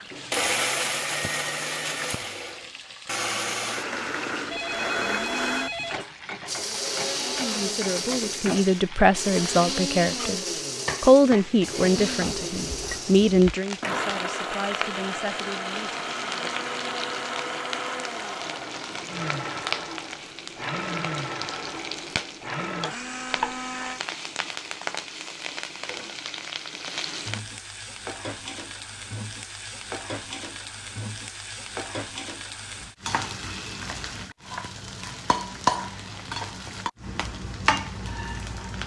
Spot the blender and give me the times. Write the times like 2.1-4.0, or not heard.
0.3-24.0.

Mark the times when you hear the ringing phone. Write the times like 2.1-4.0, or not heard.
4.5-6.0.